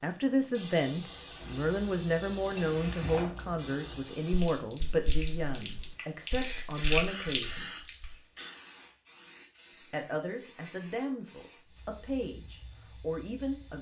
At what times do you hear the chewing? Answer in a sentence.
You can hear the chewing from 1.4 to 8.1 s.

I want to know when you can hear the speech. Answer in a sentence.
The speech can be heard from 0.0 to 7.7 s and from 9.9 to 13.7 s.